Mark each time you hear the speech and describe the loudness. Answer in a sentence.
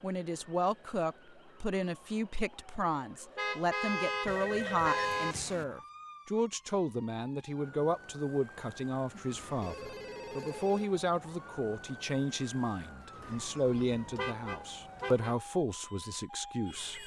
The speech can be heard from 0.0 to 17.0 s, at a steady volume.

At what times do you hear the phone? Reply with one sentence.
You can hear the phone from 4.2 to 5.7 s and from 9.1 to 10.9 s.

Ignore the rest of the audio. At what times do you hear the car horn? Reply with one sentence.
You can hear the car horn from 3.4 to 5.3 s and from 13.7 to 15.3 s.